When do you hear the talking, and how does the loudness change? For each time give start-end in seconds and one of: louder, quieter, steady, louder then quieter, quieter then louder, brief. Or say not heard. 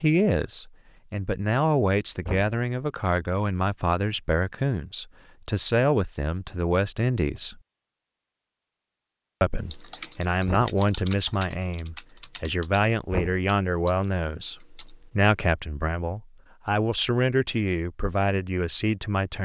0.0-7.6 steady
9.4-19.4 steady.